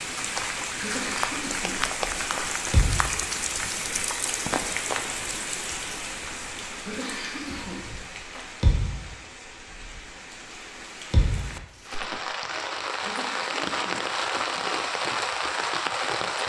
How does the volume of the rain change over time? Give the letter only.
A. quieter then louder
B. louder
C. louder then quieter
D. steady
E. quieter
A.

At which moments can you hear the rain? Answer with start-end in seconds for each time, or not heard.
0.0-16.4.